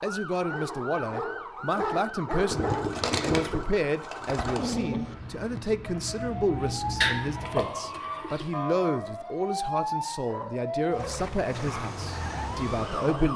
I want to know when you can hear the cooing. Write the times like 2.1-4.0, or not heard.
2.5-4.8, 7.0-8.5.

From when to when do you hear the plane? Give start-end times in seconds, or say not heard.
4.8-7.7, 11.6-13.3.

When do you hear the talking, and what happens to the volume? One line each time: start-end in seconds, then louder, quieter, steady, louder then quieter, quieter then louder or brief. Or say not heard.
0.0-13.3 steady.